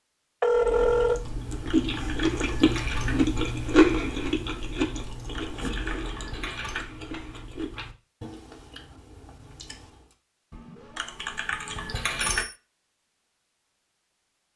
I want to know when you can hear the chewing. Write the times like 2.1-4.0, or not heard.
0.5-10.2.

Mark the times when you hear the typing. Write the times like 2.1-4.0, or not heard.
1.4-3.1, 4.9-6.8, 10.5-12.4.